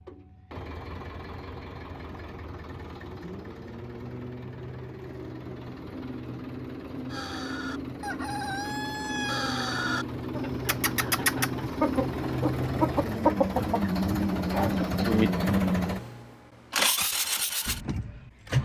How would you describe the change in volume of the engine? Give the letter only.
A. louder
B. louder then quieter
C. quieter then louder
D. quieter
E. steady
A.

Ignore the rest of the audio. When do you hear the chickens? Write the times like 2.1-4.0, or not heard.
7.1-15.3.